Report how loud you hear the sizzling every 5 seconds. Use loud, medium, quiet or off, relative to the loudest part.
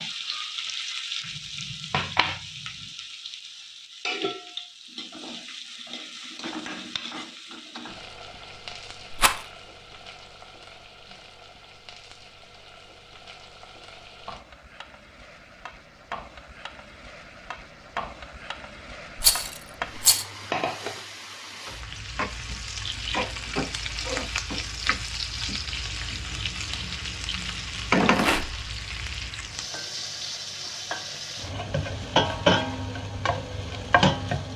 medium, quiet, quiet, quiet, medium, loud, loud.